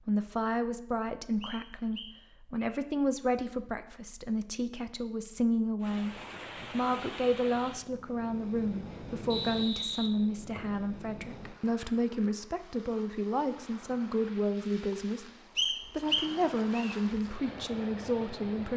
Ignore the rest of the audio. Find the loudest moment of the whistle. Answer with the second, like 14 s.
16 s.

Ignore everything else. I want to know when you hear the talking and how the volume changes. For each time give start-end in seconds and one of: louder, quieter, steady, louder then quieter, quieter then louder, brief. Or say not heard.
0.1-15.2 steady
15.9-18.7 brief.